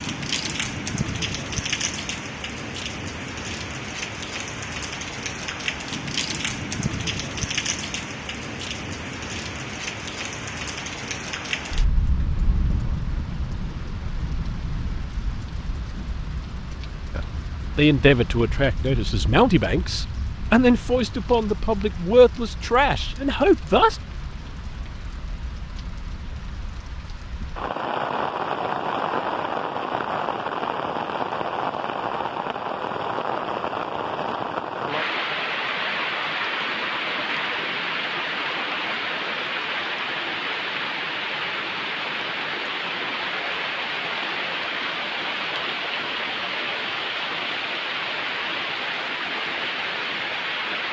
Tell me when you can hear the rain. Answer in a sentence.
You can hear the rain from 0.0 to 50.8 s.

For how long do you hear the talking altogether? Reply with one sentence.
The talking can be heard for 7 seconds in total.